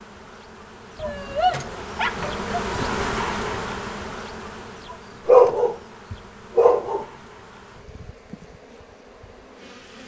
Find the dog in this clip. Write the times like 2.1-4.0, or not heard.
0.9-2.5, 5.2-7.0.